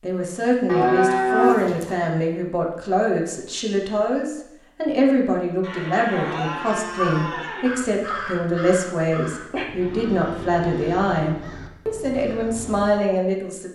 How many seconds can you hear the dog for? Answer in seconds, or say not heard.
not heard.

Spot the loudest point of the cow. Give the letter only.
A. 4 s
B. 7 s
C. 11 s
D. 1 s
D.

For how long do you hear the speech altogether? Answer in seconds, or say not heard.
14 s.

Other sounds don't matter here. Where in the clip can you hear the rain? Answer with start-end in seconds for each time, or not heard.
not heard.